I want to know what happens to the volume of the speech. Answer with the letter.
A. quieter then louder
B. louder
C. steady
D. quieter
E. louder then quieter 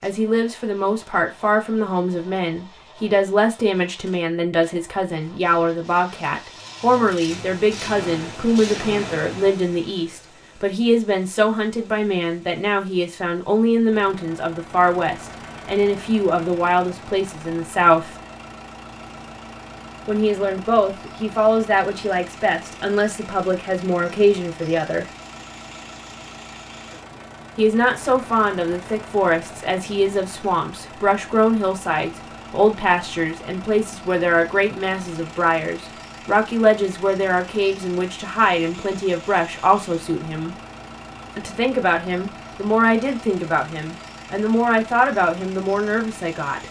C.